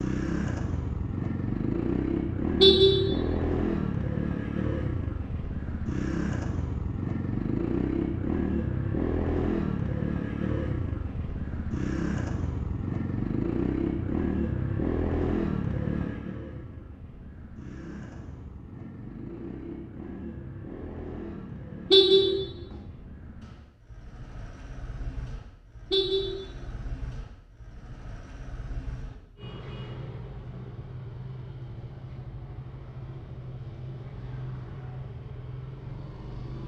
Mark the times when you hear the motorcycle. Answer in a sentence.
The motorcycle can be heard from 0.0 to 36.6 s.